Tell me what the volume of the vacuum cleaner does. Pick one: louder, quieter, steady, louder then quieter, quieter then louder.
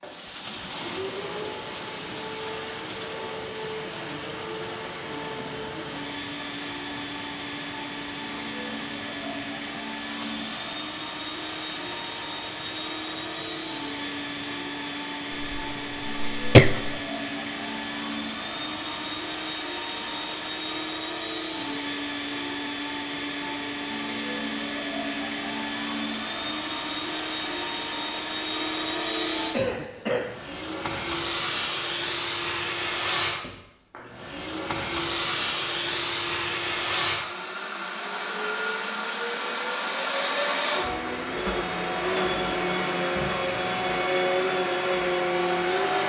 louder.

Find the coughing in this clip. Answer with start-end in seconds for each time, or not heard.
15.4-17.0, 29.5-30.4.